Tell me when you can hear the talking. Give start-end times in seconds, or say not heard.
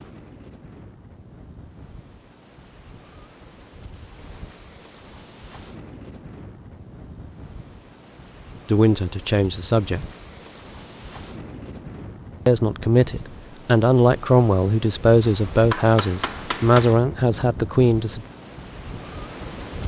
8.7-10.1, 12.4-18.2.